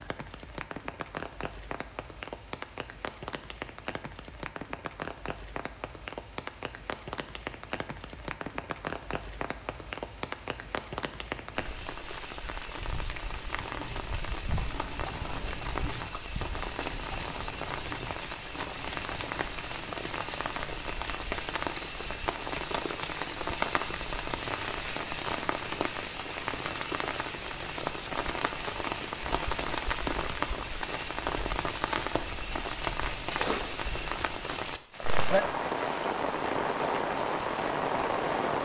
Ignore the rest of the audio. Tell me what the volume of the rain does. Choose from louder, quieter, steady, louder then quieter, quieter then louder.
louder.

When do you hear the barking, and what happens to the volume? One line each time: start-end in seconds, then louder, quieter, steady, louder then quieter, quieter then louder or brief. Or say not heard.
not heard.